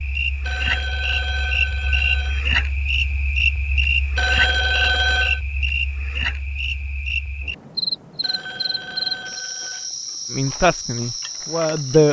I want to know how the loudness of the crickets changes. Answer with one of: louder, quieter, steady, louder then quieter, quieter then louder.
quieter.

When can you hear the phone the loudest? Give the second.
5 s.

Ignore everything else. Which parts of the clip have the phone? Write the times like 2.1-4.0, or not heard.
0.4-2.5, 4.2-5.4, 8.2-9.9.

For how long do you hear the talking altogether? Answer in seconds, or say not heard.
2 s.